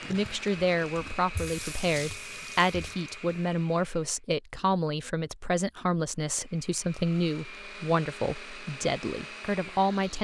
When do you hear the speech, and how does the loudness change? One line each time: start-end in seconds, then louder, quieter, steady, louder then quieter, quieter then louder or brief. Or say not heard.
0.1-10.1 steady.